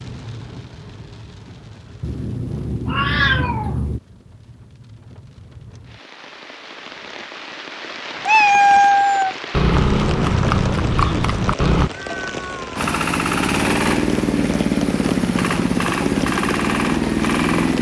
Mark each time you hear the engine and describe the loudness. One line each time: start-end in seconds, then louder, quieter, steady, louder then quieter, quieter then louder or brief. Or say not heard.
12.8-17.7 steady.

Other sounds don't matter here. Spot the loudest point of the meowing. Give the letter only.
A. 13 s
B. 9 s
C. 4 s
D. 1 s
B.